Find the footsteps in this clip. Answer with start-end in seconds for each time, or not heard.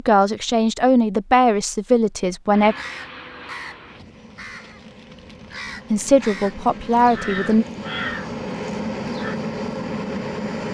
not heard.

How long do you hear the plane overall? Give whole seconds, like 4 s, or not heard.
8 s.